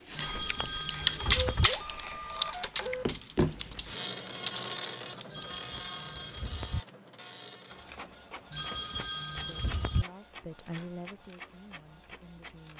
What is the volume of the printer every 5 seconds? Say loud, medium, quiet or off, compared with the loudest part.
loud, medium, quiet.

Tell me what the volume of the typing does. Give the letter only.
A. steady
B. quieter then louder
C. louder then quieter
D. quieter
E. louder
B.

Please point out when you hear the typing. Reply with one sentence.
The typing can be heard from 0.1 to 5.5 s.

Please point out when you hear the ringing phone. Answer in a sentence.
The ringing phone can be heard from 0.1 to 1.7 s, from 5.3 to 6.8 s and from 8.5 to 10.1 s.